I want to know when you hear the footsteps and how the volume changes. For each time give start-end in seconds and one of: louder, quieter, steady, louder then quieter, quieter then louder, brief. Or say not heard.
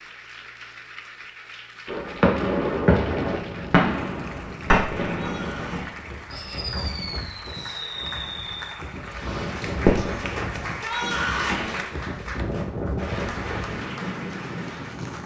not heard.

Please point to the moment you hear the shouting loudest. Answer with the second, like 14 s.
11 s.